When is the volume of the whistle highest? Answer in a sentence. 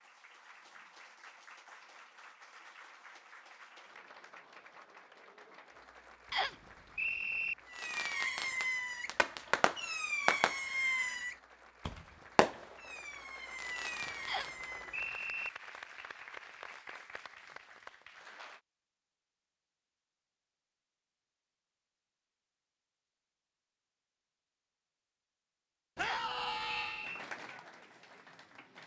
The loudest moment of the whistle is at 7 seconds.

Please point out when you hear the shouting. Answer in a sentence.
You can hear the shouting from 25.9 to 27.1 s.